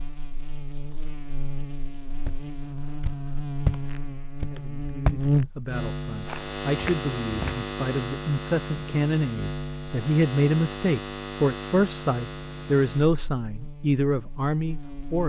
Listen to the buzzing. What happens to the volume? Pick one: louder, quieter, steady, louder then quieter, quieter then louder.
louder then quieter.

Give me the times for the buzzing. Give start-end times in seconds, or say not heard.
0.0-15.2.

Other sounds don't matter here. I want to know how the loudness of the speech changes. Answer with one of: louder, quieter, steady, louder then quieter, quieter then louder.
louder.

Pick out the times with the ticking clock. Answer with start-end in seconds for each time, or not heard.
not heard.